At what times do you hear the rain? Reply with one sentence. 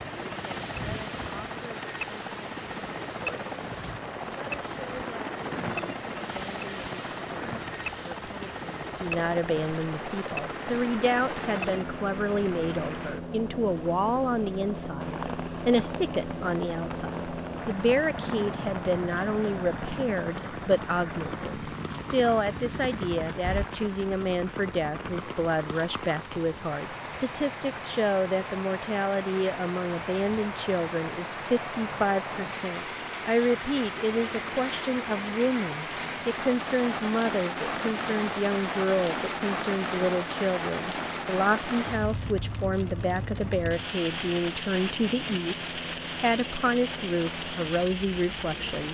The rain can be heard from 0.0 to 48.9 s.